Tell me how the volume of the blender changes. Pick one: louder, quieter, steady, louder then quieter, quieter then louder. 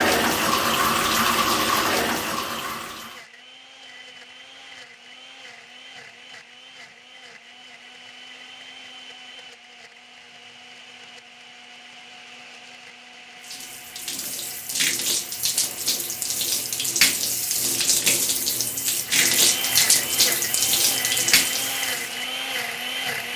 louder.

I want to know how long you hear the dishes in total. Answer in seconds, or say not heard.
not heard.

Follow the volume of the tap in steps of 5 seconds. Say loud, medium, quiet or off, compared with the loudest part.
loud, off, medium, loud, loud.